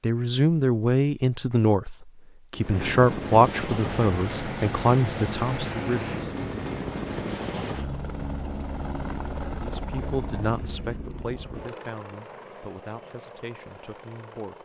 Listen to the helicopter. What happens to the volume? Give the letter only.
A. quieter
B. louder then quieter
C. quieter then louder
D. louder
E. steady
A.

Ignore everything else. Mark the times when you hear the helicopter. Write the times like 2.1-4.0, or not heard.
2.5-14.6.